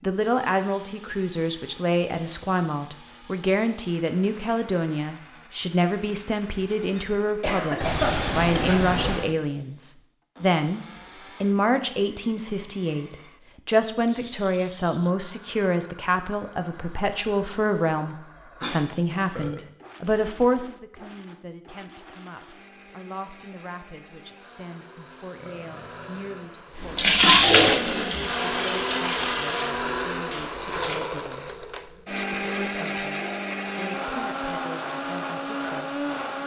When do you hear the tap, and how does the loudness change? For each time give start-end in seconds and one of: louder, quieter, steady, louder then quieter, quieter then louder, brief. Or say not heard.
26.8-31.0 quieter.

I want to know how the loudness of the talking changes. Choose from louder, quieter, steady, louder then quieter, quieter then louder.
quieter.